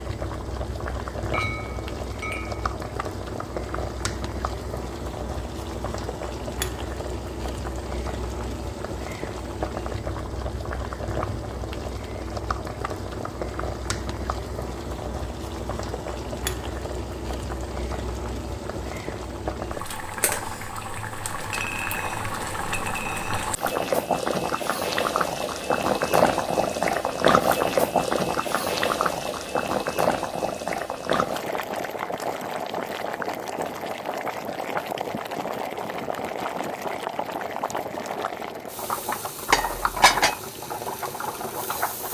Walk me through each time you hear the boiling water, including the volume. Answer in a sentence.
The boiling water can be heard from 0.0 to 42.0 s, getting louder then quieter.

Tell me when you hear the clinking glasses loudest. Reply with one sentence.
The loudest moment of the clinking glasses is at 40 seconds.